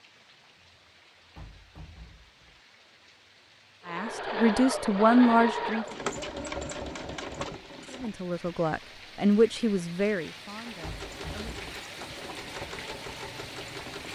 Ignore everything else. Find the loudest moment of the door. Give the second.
11 s.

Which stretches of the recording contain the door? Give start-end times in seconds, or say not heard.
1.4-2.6, 10.8-11.6.